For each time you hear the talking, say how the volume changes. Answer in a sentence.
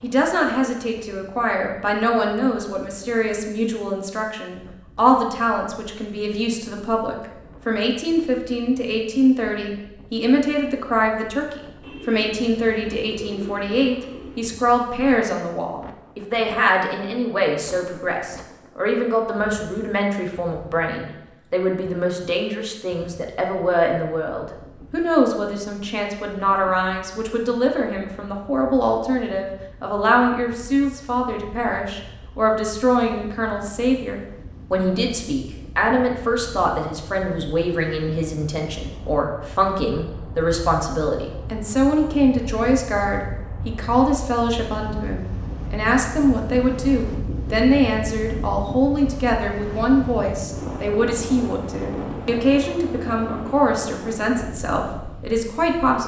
The talking can be heard from 0.0 to 56.0 s, at a steady volume.